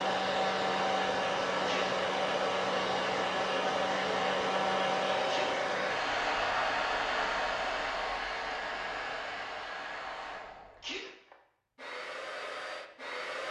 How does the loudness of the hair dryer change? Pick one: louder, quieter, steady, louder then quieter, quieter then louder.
quieter.